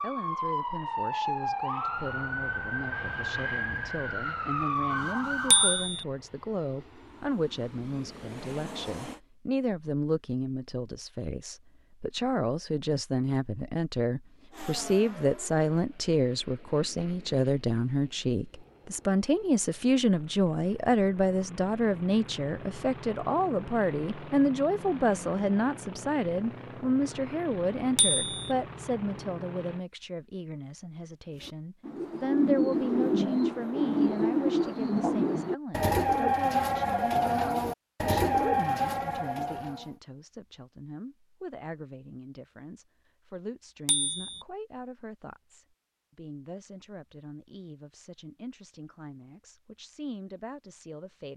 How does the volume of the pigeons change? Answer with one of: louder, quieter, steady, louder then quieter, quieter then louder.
steady.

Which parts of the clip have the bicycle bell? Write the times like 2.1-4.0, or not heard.
5.5-6.0, 27.9-28.4, 43.9-44.5.